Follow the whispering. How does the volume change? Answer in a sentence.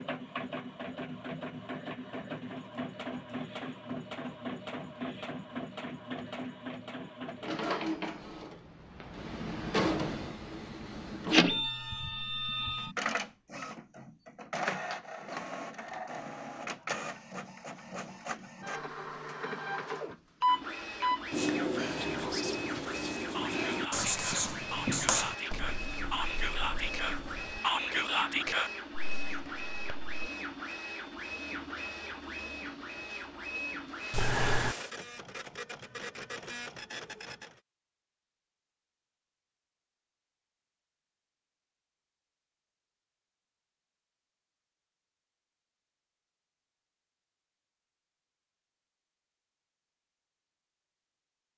The volume of the whispering goes up.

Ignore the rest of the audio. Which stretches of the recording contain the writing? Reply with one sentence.
The writing can be heard from 21.3 to 27.6 s.